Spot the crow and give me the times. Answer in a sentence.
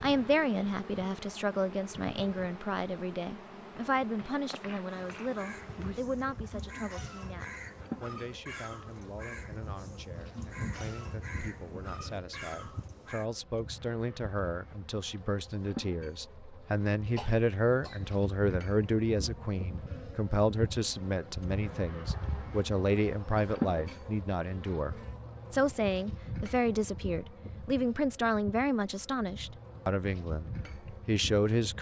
You can hear the crow from 4.8 to 13.2 s.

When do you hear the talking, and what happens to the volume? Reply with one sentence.
You can hear the talking from 0.0 to 31.7 s, getting quieter then louder.